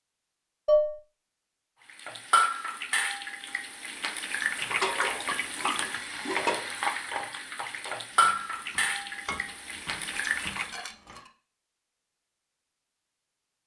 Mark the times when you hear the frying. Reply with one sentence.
The frying can be heard from 1.9 to 10.9 s.